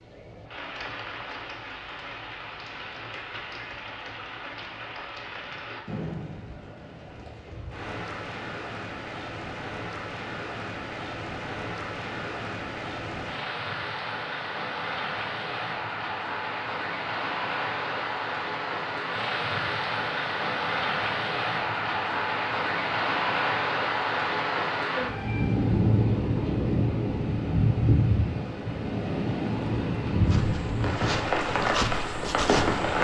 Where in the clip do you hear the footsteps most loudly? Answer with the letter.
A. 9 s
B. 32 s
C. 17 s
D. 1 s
B.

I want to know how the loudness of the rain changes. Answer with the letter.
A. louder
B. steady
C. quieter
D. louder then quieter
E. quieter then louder
A.